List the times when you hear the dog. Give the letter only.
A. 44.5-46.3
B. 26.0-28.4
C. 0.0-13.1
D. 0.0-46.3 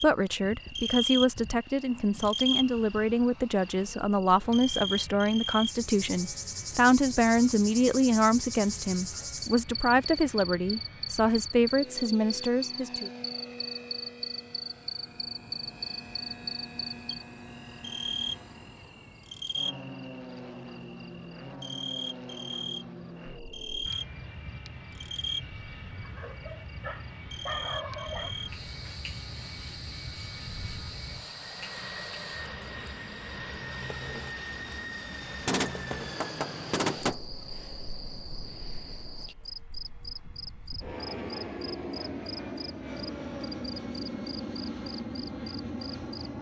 B.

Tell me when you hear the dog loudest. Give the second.
28 s.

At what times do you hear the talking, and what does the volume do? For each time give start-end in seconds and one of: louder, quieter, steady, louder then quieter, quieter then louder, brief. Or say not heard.
0.0-13.1 steady.